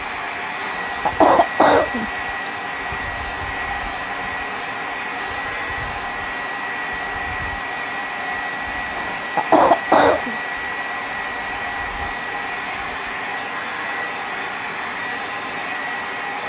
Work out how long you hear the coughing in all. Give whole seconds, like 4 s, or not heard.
3 s.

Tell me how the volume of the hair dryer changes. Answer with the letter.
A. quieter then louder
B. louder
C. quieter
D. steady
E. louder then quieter
D.